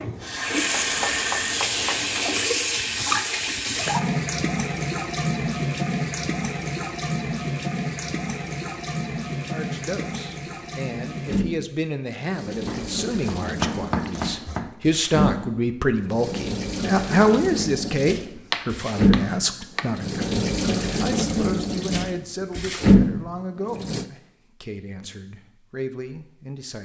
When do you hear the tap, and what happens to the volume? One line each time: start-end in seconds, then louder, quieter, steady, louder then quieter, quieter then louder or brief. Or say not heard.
0.0-24.1 quieter then louder.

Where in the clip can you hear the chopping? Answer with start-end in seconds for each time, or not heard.
0.7-2.0, 12.7-14.8, 18.5-19.9.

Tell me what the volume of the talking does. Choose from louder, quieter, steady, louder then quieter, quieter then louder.
louder then quieter.